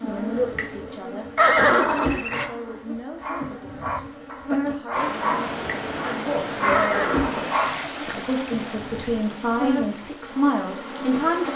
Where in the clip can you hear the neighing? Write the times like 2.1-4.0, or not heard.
1.4-2.5, 6.7-7.9.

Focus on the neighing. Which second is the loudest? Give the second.
2 s.